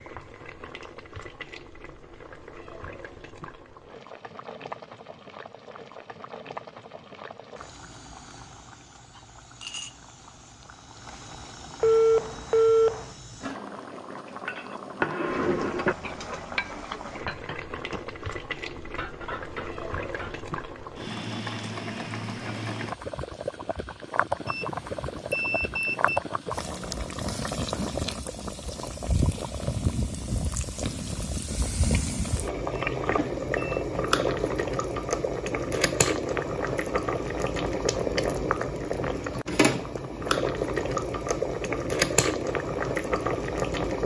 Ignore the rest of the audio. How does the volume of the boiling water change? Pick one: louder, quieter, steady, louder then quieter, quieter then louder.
louder.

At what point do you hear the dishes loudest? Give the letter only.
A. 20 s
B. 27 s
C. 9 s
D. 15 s
D.